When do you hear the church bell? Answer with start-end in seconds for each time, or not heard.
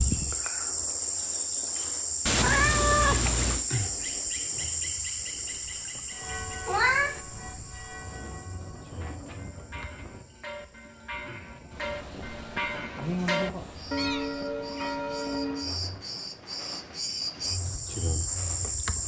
6.1-15.8.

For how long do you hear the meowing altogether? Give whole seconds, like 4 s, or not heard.
3 s.